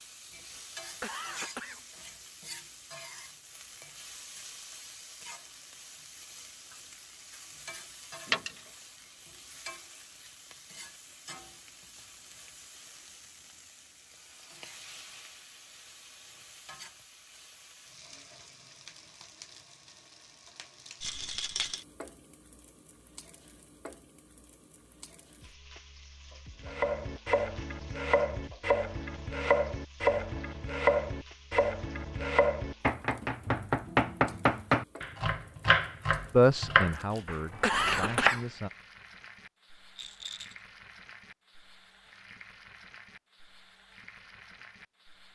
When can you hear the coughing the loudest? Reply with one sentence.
The loudest moment of the coughing is at 38 seconds.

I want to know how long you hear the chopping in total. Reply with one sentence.
You can hear the chopping for 12 seconds altogether.